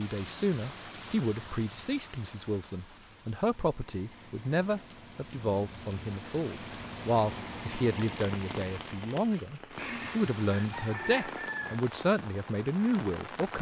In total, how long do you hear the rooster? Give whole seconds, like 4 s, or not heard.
2 s.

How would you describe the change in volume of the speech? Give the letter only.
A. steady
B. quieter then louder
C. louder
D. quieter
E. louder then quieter
A.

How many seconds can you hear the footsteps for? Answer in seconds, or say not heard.
not heard.